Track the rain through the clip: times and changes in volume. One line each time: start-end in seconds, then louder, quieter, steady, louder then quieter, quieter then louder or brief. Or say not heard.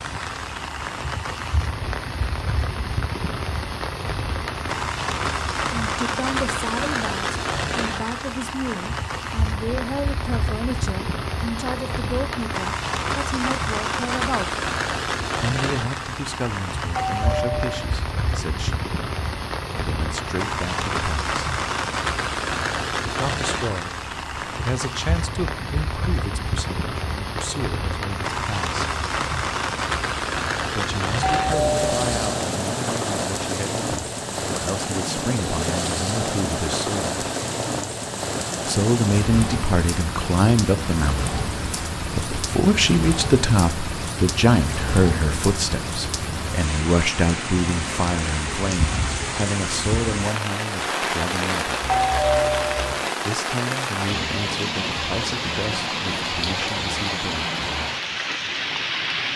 0.0-59.3 steady.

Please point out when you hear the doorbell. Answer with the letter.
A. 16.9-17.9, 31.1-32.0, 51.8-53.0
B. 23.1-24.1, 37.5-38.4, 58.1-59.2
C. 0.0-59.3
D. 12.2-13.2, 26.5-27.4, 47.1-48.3
A.